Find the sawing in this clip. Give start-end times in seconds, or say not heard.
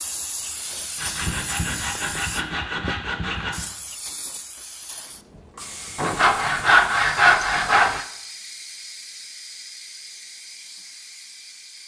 0.9-3.6, 6.0-8.1.